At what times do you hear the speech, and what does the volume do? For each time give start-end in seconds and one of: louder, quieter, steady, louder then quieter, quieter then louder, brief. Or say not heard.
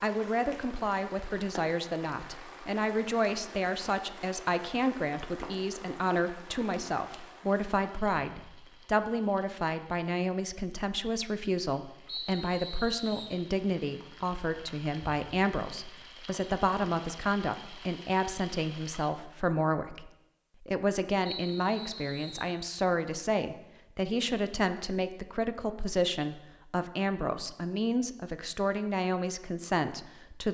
0.0-30.4 steady.